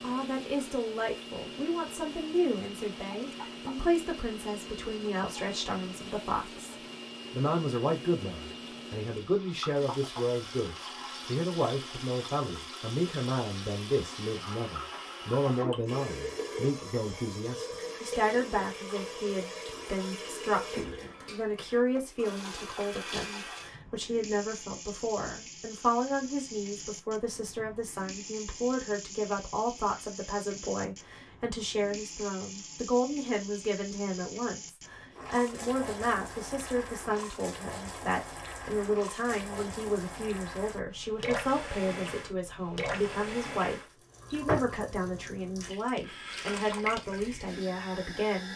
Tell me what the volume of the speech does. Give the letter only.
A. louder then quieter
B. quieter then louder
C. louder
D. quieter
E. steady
E.